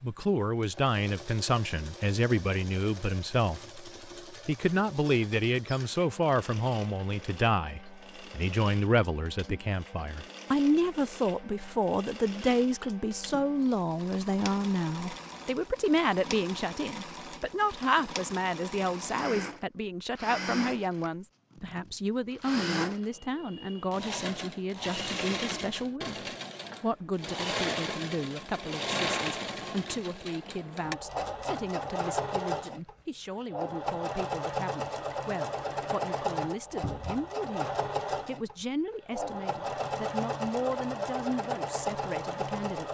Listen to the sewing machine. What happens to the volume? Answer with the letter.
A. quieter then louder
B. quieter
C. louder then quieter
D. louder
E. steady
D.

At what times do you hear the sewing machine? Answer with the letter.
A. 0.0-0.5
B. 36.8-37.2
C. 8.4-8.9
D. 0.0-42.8
D.